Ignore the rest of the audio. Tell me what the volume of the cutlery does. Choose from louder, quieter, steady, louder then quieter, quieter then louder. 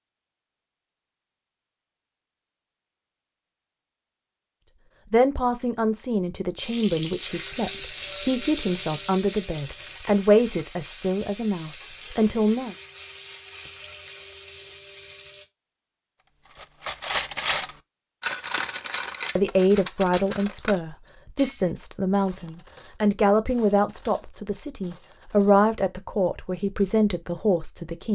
quieter.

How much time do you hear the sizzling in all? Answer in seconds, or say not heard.
9 s.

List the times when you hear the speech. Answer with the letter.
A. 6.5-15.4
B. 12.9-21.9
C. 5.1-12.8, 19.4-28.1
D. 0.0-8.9
C.